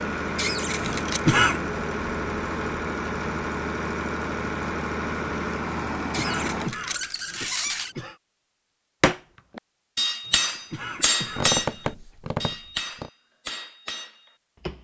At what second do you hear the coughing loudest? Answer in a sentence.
The loudest moment of the coughing is at 1 second.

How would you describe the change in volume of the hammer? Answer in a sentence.
The loudness of the hammer goes down.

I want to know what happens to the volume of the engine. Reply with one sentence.
The loudness of the engine stays about the same.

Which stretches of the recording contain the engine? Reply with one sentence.
The engine can be heard from 0.0 to 6.8 s.